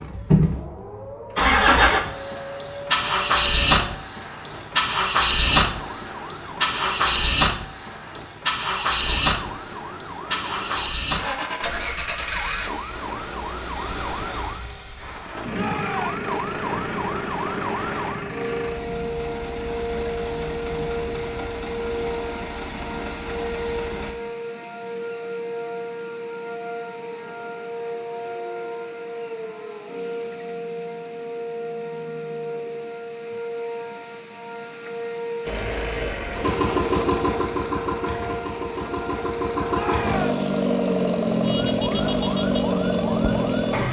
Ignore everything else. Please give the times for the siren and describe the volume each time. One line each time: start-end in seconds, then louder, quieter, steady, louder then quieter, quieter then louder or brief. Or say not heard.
0.0-43.8 louder.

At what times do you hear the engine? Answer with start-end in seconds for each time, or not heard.
0.0-24.1, 35.5-43.8.